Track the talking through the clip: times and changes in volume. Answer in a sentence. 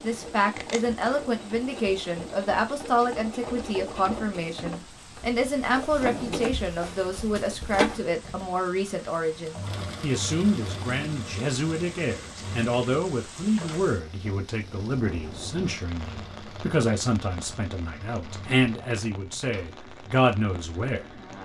The talking can be heard from 0.0 to 21.1 s, at a steady volume.